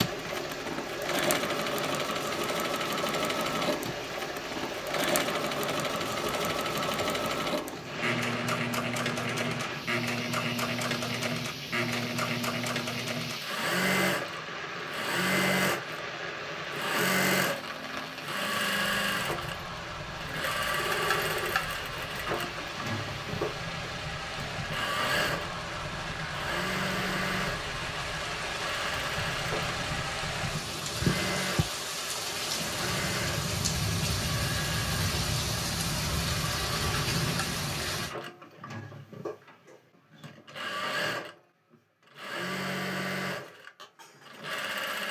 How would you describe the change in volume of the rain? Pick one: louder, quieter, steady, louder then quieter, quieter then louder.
louder.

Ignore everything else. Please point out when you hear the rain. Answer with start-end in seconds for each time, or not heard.
0.0-38.1.